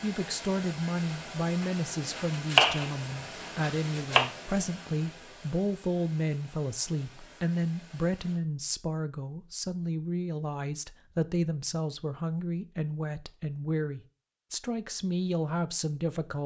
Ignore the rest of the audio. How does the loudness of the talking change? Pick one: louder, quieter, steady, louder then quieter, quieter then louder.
steady.